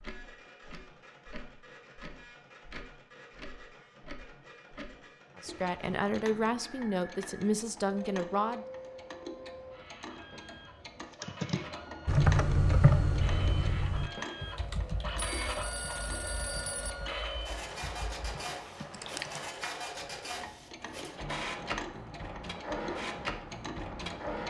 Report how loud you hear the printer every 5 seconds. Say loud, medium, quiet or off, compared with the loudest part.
quiet, medium, medium, loud, loud.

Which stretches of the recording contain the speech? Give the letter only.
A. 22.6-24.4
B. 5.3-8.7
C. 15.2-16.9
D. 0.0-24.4
B.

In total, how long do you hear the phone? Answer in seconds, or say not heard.
2 s.